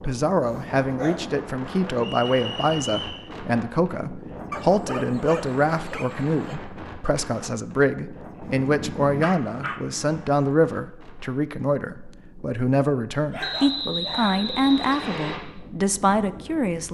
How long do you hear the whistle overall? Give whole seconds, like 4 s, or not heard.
3 s.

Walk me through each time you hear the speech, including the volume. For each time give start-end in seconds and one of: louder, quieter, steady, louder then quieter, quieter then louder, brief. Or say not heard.
0.0-16.8 steady.